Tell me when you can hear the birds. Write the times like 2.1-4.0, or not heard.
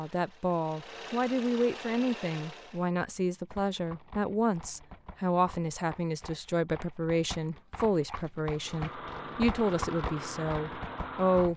not heard.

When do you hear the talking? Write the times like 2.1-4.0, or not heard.
0.0-11.5.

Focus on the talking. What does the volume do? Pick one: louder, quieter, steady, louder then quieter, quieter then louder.
steady.